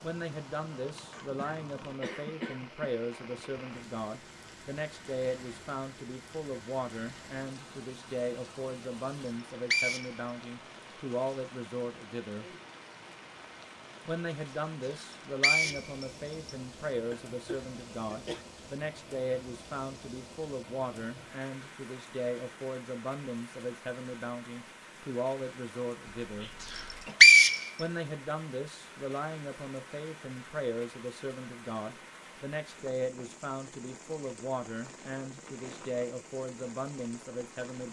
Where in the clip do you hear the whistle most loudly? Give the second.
27 s.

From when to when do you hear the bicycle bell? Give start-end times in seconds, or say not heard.
not heard.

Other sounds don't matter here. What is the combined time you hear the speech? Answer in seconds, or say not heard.
35 s.